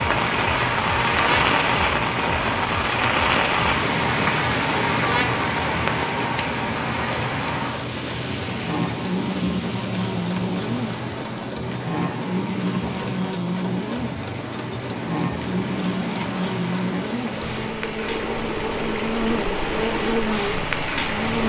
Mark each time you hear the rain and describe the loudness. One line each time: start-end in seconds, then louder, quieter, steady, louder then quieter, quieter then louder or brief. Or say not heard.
0.0-21.4 quieter then louder.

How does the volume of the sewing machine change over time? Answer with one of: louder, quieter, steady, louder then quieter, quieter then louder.
steady.